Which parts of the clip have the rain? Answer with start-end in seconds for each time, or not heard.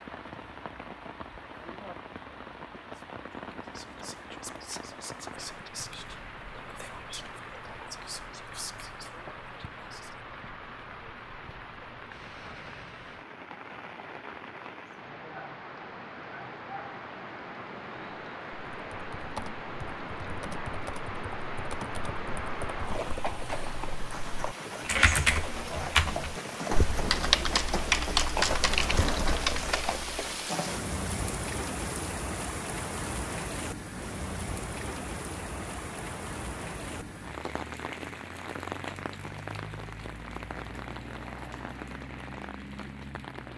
0.0-43.5.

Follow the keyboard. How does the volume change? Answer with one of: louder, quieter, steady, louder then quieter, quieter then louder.
louder.